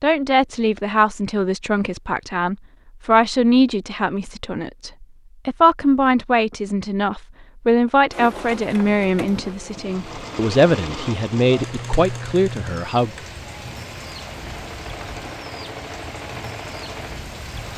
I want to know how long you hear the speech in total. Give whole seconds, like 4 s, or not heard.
13 s.